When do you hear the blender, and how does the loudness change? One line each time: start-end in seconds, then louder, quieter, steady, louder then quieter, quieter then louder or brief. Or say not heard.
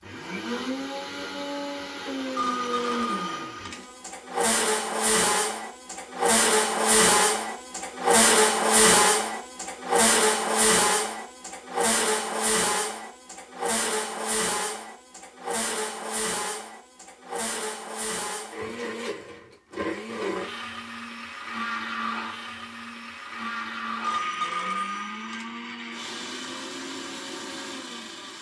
0.0-28.3 louder then quieter.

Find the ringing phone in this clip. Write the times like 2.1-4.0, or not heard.
2.4-4.0, 24.0-25.4.